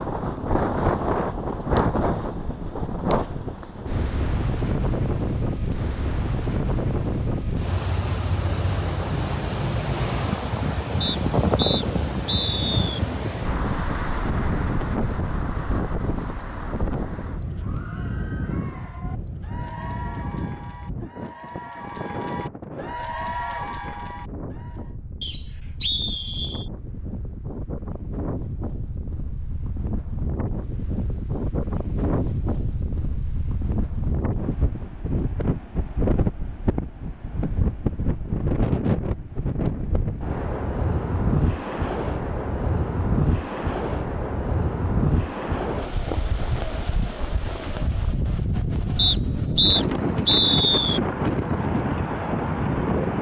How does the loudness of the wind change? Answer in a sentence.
The loudness of the wind goes down, then up.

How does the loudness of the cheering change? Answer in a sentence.
The volume of the cheering goes up.